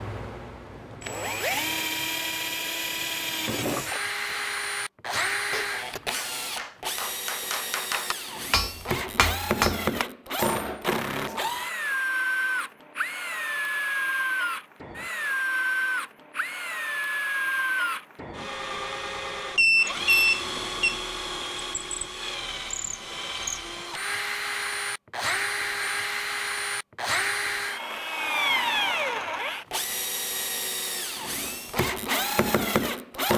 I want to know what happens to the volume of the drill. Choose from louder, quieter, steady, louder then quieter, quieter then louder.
steady.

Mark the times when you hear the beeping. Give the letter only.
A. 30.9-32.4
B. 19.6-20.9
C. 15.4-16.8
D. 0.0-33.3
B.